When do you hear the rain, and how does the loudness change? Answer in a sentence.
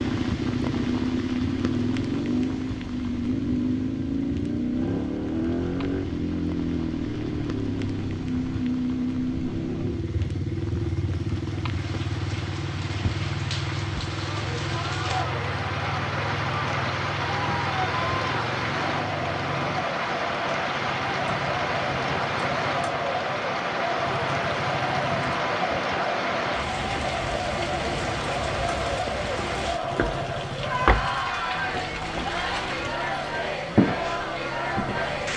The rain can be heard from 0.0 to 35.3 s, getting louder.